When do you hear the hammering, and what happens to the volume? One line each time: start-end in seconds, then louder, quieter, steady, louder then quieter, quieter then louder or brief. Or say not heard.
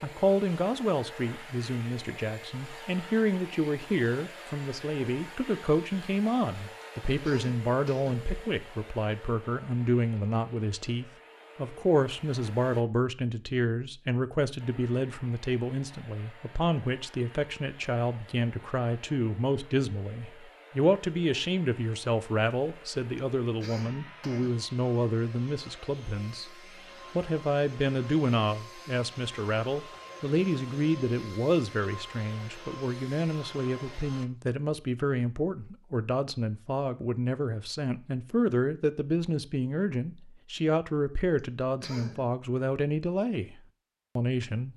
not heard.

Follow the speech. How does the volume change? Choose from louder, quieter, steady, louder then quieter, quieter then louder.
steady.